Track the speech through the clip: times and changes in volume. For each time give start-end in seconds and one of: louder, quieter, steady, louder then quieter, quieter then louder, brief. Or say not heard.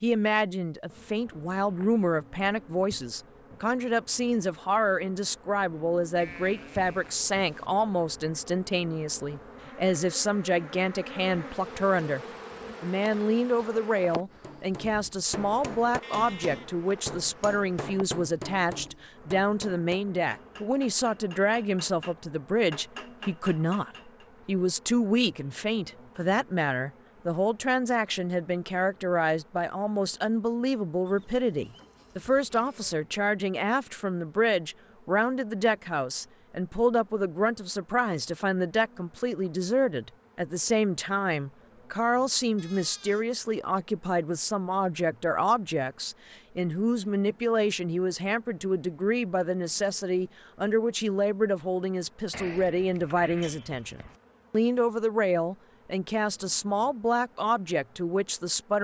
0.0-12.2 steady
12.8-58.7 steady.